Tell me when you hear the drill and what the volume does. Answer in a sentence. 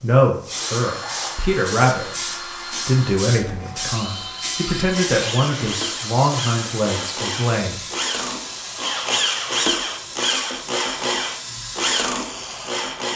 The drill can be heard from 0.0 to 13.1 s, getting louder.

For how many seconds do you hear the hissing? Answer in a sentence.
The hissing can be heard for 13 seconds in total.